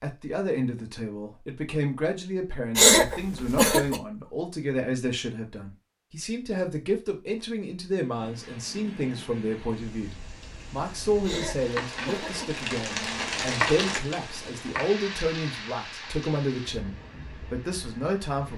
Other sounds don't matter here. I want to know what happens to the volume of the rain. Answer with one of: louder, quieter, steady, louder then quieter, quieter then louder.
louder then quieter.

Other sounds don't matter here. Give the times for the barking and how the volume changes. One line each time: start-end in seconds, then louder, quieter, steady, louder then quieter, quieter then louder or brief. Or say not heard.
not heard.